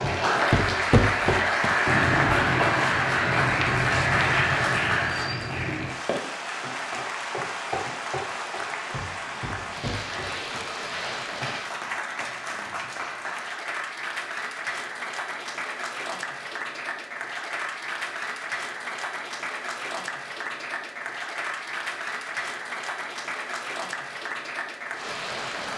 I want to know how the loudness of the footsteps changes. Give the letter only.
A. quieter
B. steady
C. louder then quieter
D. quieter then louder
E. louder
A.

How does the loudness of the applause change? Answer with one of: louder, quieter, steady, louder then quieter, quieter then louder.
quieter.